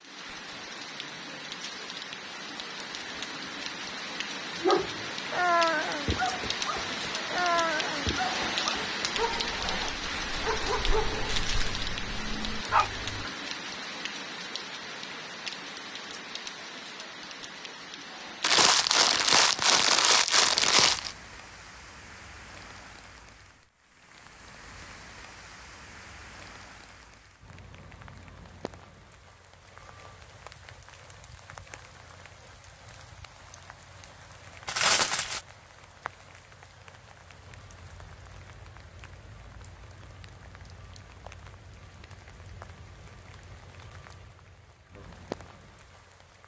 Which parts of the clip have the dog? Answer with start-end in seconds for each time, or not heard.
4.6-13.3.